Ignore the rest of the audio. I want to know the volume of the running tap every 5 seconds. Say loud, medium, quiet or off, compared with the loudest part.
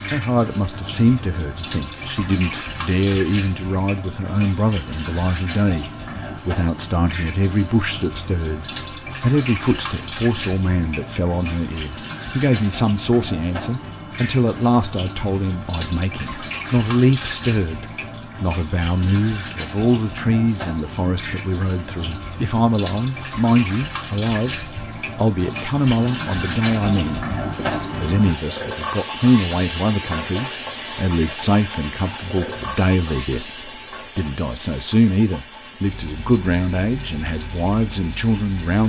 medium, medium, medium, medium, medium, loud, loud, medium.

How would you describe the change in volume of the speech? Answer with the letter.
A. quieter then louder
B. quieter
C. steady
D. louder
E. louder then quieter
C.